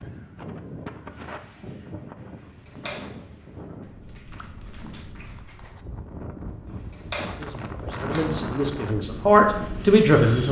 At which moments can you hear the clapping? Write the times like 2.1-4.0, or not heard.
3.8-5.8.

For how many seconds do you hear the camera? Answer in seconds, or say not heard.
3 s.